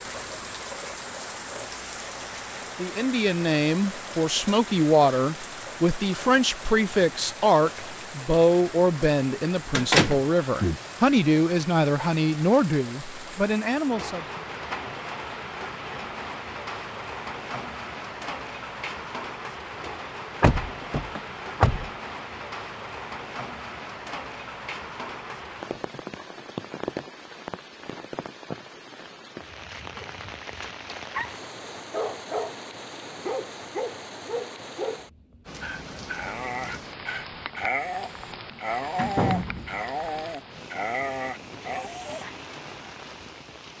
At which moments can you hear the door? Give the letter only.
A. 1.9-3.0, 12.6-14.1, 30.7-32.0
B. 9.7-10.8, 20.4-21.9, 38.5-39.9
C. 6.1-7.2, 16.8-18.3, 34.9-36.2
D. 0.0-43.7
B.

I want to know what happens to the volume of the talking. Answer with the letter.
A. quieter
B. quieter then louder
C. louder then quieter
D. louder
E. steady
E.